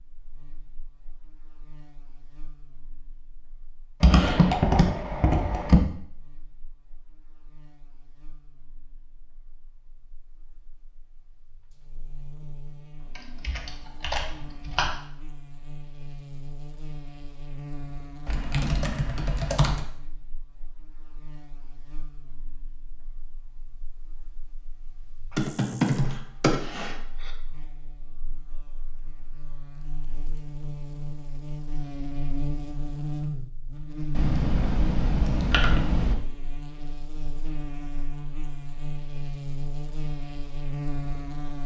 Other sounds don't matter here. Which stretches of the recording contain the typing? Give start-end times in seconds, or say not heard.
4.0-5.8, 13.0-14.9, 18.2-19.9, 25.4-27.3, 34.1-36.1.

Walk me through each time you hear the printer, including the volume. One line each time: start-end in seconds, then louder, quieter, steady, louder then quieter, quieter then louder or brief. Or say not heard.
not heard.